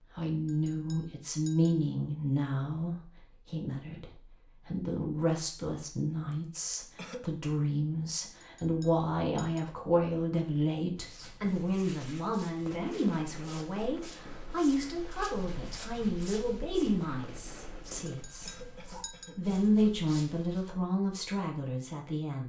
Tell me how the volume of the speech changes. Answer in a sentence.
The volume of the speech stays about the same.